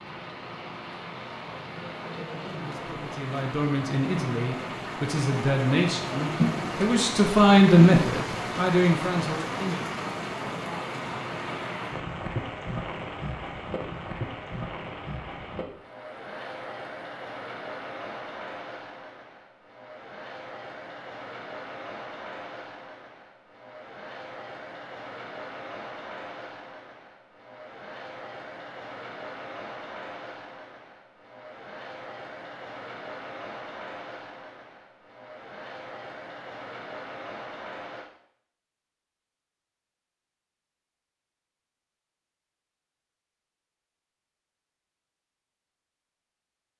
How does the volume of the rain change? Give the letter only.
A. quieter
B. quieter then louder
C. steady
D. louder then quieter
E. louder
A.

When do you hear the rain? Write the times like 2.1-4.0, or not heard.
0.0-38.1.